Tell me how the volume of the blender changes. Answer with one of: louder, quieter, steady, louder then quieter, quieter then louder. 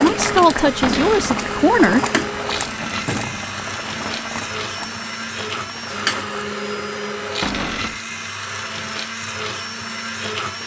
steady.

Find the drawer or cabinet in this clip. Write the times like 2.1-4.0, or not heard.
0.8-1.4, 7.4-8.0.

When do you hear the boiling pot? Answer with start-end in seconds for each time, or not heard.
0.0-6.5.